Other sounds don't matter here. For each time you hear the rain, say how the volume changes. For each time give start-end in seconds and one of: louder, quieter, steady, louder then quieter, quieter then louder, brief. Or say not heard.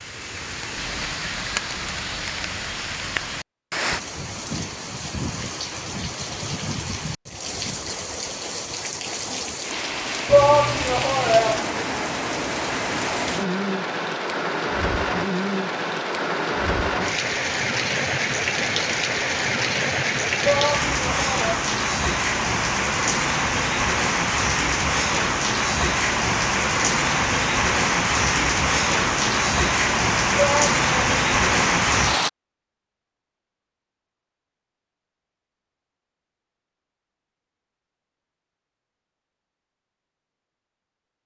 0.0-32.3 louder.